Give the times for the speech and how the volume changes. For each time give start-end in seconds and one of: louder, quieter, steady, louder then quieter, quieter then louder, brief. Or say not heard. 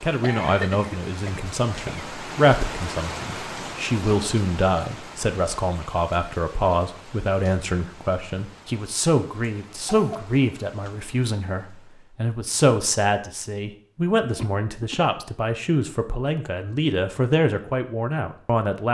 0.0-18.8 steady.